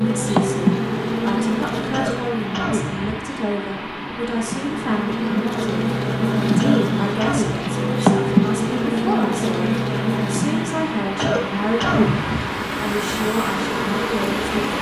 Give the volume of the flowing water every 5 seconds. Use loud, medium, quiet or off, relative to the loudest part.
medium, medium, loud.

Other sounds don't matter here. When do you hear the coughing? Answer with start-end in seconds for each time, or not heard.
1.8-3.2, 6.5-7.6, 11.1-12.5.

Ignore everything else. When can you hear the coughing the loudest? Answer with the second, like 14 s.
12 s.